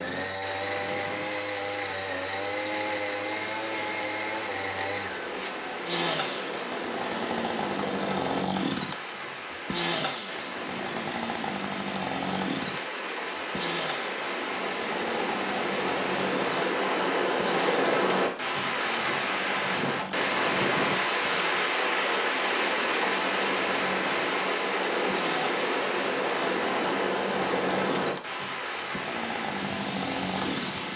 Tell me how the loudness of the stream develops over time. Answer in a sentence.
The loudness of the stream goes up.